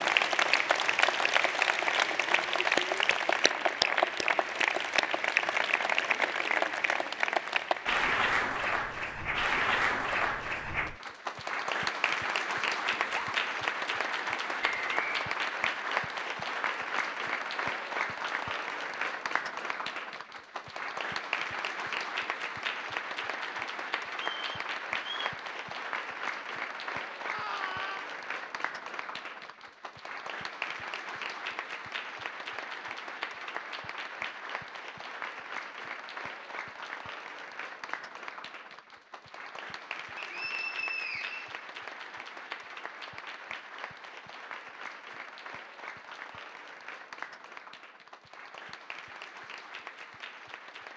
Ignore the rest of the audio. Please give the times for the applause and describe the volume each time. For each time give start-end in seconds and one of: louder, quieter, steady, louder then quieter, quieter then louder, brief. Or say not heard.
0.0-50.9 quieter.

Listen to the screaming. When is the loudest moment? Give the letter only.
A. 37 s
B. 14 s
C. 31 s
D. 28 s
D.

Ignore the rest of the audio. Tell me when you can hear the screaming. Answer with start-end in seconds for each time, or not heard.
12.9-13.3, 27.3-28.1.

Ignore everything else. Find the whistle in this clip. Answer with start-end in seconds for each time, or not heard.
14.6-15.3, 24.1-25.4, 40.1-41.6.